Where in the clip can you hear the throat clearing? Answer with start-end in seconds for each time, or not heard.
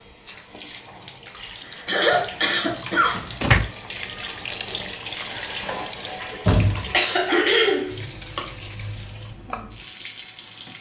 1.8-3.1, 6.9-8.4.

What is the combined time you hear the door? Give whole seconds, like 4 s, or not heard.
3 s.